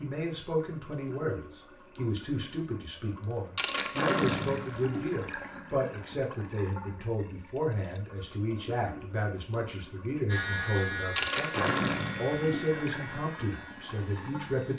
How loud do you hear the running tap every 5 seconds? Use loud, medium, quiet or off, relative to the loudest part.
loud, medium, loud.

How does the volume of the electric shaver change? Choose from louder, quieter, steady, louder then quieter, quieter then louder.
quieter.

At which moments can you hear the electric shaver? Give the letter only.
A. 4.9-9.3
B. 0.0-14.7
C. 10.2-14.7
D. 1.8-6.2
C.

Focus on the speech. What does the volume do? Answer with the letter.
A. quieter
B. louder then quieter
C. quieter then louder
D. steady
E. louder
D.